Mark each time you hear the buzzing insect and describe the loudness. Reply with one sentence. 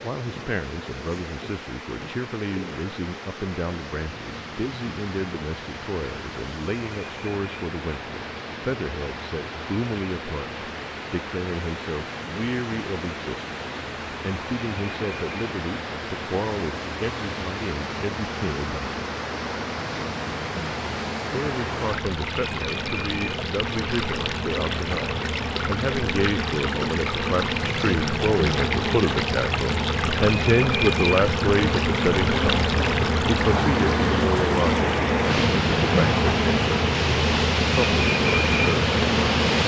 The buzzing insect can be heard from 0.0 to 39.6 s, getting louder.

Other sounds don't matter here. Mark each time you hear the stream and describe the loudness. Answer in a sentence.
The stream can be heard from 0.0 to 39.6 s, getting louder.